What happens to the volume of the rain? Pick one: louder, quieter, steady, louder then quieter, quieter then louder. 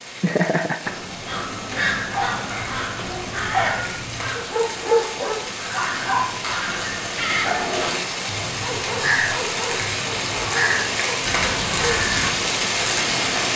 louder.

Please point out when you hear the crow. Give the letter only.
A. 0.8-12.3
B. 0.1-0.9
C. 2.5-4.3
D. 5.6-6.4
A.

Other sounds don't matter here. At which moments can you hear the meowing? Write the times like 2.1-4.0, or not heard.
2.5-4.3.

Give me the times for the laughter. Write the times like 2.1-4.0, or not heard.
0.1-0.9.